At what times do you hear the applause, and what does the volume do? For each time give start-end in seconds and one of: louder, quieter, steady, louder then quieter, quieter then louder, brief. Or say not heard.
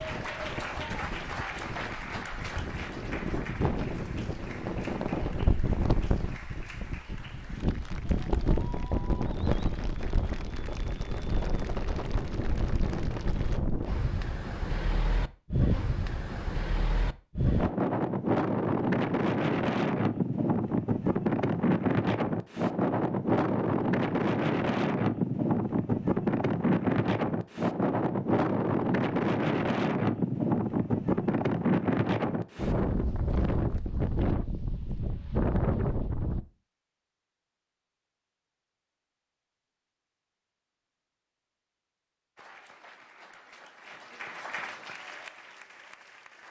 0.0-13.6 quieter
42.4-46.4 louder then quieter.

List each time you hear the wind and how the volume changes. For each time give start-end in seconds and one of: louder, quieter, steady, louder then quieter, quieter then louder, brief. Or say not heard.
0.0-36.4 louder.